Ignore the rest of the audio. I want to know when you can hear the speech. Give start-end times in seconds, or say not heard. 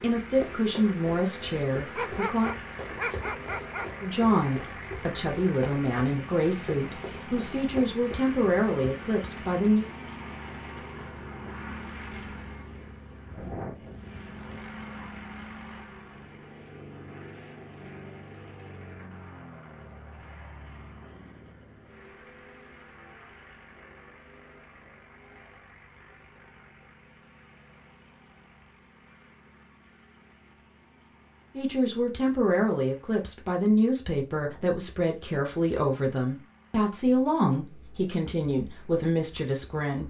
0.0-2.5, 4.0-9.8, 31.6-40.0.